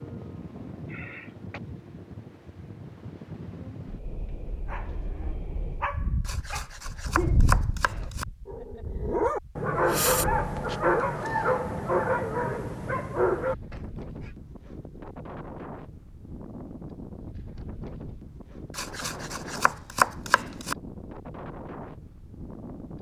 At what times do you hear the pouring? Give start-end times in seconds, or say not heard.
not heard.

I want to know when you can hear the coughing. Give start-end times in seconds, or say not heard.
0.8-1.6.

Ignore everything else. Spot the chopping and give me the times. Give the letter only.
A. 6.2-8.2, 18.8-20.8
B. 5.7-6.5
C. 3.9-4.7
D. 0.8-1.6
A.